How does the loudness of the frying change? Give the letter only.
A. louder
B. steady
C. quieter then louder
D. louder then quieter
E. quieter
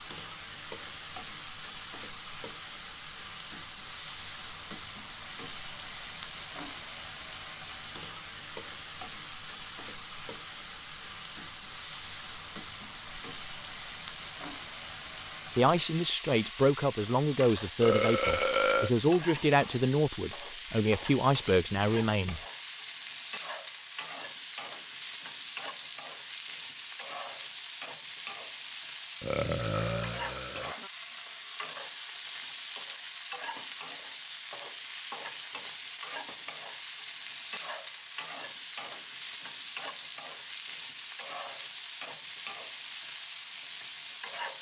B.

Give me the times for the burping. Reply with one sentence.
The burping can be heard from 17.8 to 18.9 s and from 29.2 to 30.8 s.